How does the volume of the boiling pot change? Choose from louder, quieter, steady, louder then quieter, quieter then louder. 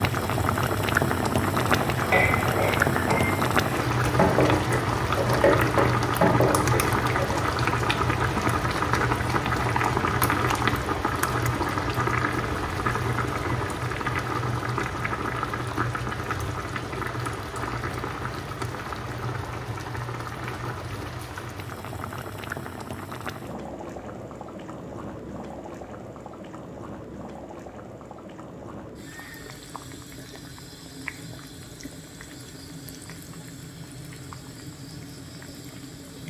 quieter.